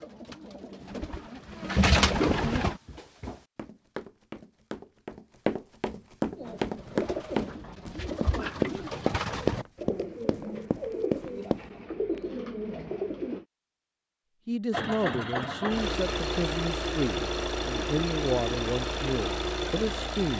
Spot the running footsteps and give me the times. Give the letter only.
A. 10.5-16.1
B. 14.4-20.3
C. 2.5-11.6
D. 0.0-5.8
C.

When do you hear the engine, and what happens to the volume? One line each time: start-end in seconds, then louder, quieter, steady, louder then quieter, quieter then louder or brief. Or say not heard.
14.7-20.3 steady.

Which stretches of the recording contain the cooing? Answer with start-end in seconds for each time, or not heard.
0.0-2.8, 6.3-13.4.